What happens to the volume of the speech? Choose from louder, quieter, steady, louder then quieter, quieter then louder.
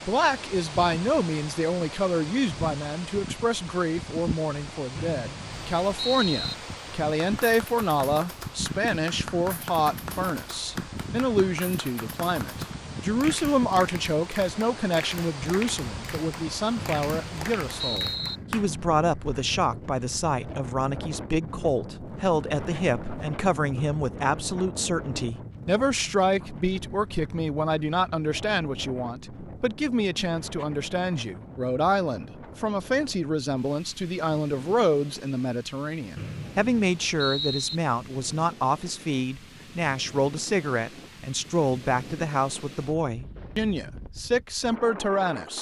steady.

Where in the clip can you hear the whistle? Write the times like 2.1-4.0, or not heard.
5.0-6.5, 16.8-18.4, 36.1-37.8.